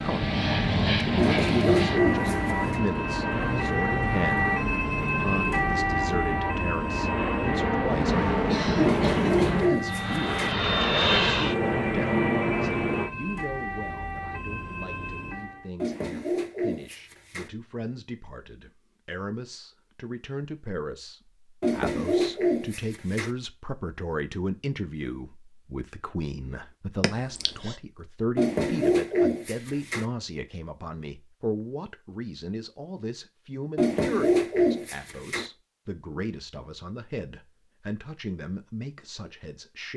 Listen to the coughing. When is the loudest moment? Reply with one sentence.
The loudest moment of the coughing is at 9 seconds.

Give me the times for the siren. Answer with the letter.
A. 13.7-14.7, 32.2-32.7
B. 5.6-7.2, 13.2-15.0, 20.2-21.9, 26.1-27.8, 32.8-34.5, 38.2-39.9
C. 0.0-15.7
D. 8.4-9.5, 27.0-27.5
C.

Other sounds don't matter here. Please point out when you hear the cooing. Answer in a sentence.
The cooing can be heard from 1.1 to 2.8 s, from 8.8 to 10.6 s, from 15.8 to 17.5 s, from 21.6 to 23.3 s, from 28.4 to 30.1 s and from 33.8 to 35.5 s.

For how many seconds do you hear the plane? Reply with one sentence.
You can hear the plane for 13 seconds altogether.